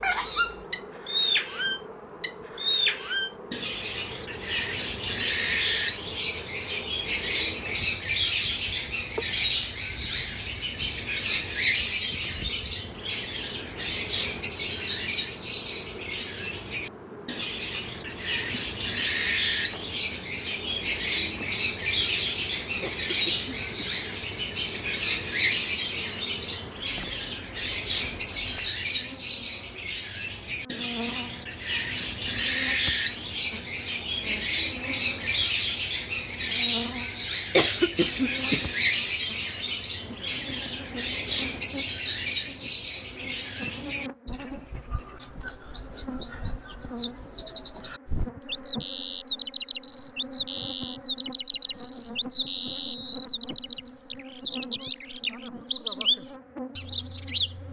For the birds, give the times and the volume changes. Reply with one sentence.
The birds can be heard from 0.0 to 57.6 s, at a steady volume.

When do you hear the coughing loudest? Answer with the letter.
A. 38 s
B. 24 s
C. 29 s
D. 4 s
A.